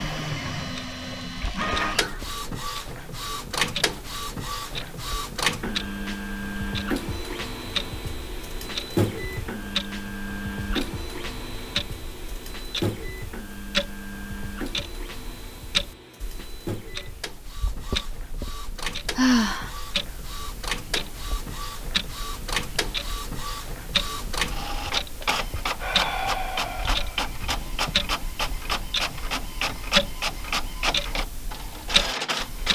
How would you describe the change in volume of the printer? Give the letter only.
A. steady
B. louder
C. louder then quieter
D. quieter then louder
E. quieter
D.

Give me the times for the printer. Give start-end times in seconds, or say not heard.
0.0-32.6.